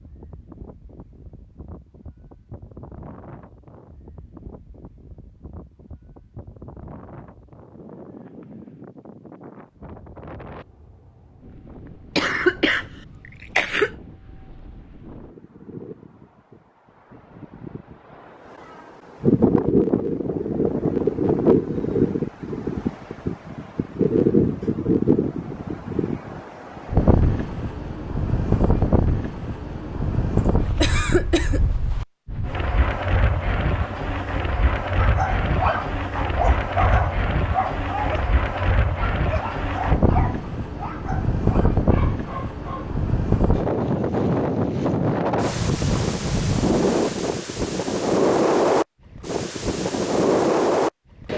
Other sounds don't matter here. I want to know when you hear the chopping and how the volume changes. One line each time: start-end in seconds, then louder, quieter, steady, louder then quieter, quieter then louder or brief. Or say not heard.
not heard.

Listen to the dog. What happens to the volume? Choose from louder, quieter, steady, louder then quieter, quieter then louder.
quieter.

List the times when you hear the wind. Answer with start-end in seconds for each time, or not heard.
0.0-51.3.